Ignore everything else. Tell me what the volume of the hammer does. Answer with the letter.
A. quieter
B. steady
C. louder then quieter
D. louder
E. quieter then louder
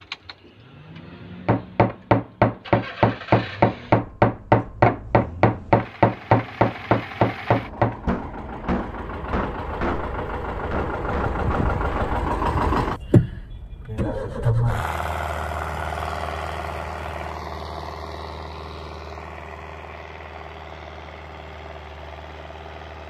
A.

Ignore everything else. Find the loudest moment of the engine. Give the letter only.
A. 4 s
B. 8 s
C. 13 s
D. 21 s
C.